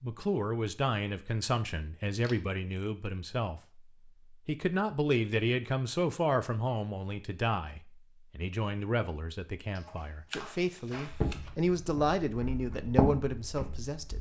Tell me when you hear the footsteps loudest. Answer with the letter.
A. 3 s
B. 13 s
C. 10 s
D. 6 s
B.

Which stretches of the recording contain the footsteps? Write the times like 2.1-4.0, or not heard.
11.1-14.1.